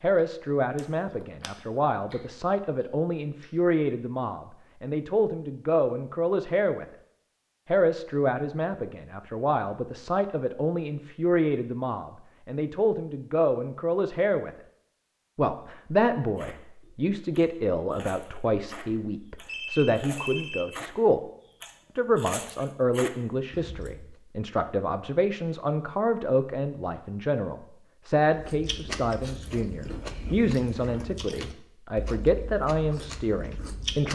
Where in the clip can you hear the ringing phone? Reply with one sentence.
The ringing phone can be heard from 19.4 to 20.6 s.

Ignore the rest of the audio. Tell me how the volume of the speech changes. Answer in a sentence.
The volume of the speech stays about the same.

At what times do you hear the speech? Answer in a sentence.
You can hear the speech from 0.0 to 6.8 s, from 7.7 to 14.5 s, from 15.3 to 21.2 s and from 21.9 to 34.1 s.